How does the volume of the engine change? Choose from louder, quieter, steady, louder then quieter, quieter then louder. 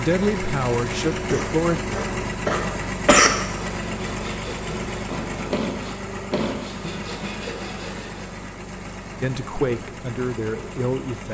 quieter.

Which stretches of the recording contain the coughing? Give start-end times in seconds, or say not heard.
1.3-3.3.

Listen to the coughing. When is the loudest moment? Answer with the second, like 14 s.
3 s.